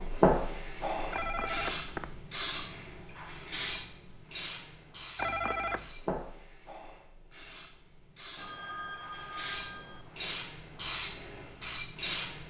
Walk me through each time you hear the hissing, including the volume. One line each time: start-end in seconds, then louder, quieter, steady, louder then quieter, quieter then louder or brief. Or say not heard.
0.0-12.4 quieter then louder.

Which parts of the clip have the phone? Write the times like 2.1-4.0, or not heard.
1.1-2.2, 5.2-5.9, 8.3-10.4.